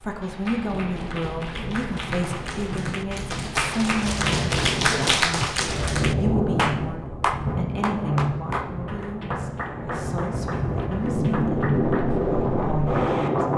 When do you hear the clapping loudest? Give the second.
5 s.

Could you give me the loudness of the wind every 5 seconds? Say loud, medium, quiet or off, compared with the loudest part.
medium, medium, loud.